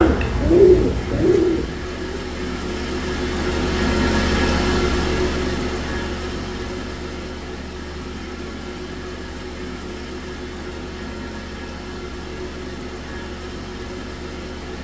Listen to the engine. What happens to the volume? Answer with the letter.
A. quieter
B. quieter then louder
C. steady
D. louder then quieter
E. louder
D.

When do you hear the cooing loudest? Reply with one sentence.
The volume of the cooing peaks at 1 second.